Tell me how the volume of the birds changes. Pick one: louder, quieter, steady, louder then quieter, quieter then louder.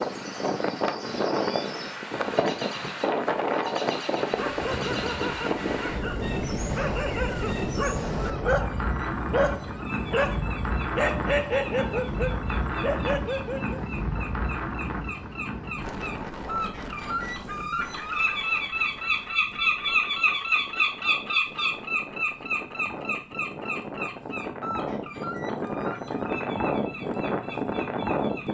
louder then quieter.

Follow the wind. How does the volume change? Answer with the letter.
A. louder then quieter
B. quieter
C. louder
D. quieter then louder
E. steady
D.